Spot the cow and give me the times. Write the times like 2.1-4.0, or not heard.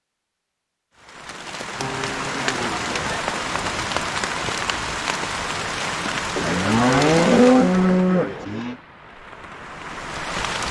1.8-3.5, 6.3-8.8.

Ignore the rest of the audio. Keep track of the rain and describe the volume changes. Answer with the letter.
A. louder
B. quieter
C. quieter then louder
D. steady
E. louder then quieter
B.